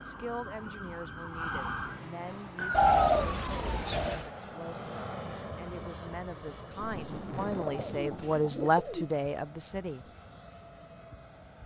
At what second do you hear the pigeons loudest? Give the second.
3 s.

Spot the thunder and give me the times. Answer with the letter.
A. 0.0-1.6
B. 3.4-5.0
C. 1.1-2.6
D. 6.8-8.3
D.